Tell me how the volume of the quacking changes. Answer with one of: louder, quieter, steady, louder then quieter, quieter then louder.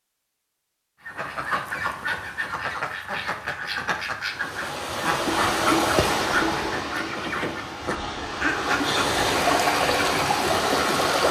steady.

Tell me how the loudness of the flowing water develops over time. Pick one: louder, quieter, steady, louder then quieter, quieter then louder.
quieter then louder.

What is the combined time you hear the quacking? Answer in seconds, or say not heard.
8 s.